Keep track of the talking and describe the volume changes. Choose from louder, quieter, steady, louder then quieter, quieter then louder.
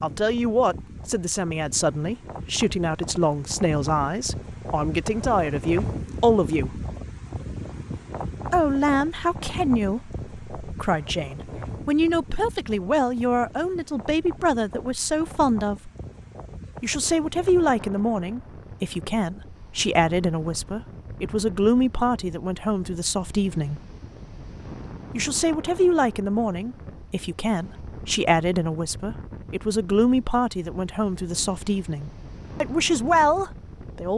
steady.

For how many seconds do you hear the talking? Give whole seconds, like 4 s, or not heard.
30 s.